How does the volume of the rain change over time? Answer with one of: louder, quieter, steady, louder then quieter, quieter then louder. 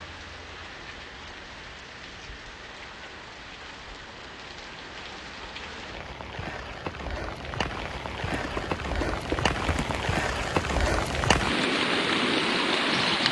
louder.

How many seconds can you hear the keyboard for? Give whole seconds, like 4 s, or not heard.
2 s.